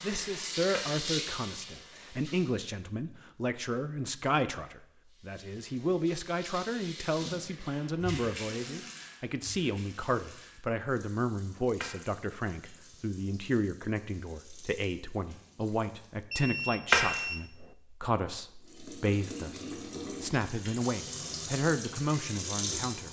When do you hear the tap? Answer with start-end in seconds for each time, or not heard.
0.0-2.5, 5.0-16.2, 18.6-23.0.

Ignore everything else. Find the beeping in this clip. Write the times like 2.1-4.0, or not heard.
16.3-17.8.